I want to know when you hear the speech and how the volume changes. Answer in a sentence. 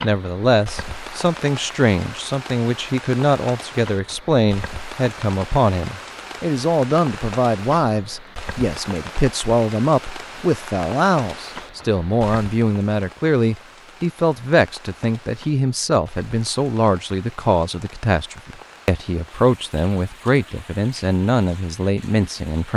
You can hear the speech from 0.0 to 22.7 s, at a steady volume.